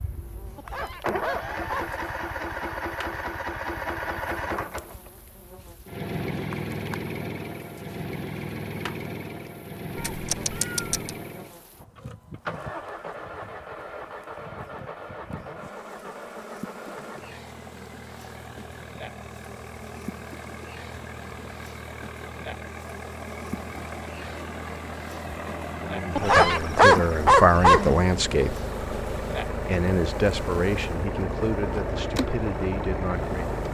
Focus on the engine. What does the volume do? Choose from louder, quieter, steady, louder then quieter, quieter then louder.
quieter then louder.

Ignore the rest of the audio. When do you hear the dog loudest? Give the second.
27 s.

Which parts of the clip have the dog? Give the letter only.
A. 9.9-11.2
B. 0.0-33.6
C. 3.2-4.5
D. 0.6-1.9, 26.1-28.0
D.